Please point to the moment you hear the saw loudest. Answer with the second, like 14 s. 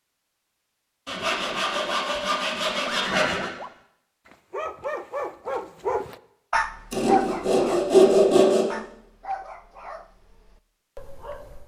8 s.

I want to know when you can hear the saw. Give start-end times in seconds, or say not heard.
1.1-3.5, 6.9-8.7.